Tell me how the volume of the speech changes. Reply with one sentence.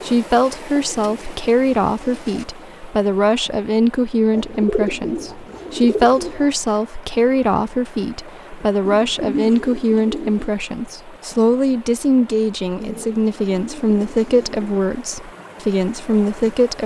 The volume of the speech stays about the same.